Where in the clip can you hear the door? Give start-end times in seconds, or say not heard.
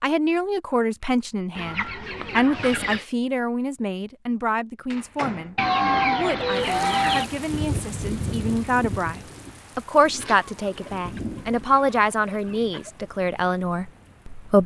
4.9-5.6.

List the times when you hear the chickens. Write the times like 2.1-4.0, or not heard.
1.6-3.0, 5.5-7.3, 10.2-12.9.